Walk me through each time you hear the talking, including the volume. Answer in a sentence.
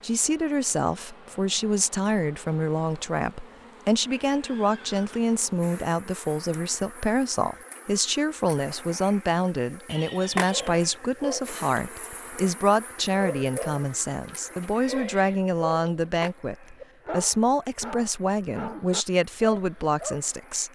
You can hear the talking from 0.0 to 20.7 s, at a steady volume.